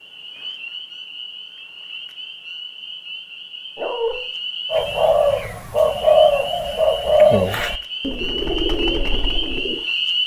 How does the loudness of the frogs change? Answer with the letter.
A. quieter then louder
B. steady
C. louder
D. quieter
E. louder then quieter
C.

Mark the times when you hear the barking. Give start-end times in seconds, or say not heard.
3.8-4.2.